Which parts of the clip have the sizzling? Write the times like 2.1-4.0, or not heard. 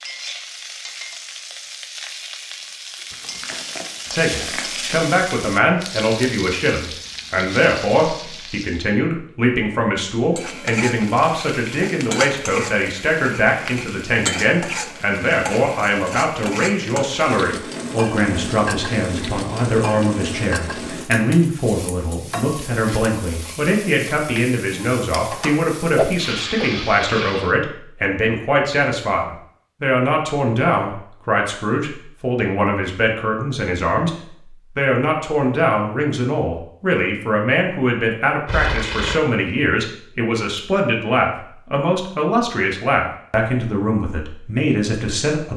0.0-8.8, 10.3-27.6.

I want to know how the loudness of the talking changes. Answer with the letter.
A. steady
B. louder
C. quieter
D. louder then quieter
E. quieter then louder
A.